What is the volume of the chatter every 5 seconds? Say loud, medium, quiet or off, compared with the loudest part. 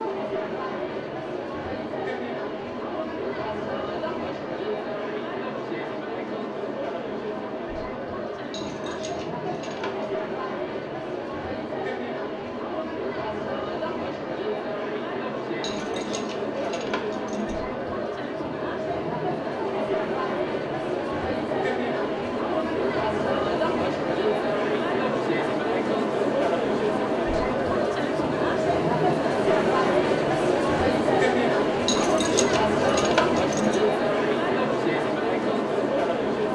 medium, medium, medium, medium, loud, loud, loud, loud.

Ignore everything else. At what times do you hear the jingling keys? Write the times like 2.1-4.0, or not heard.
8.5-10.2, 15.6-17.6, 31.9-33.8.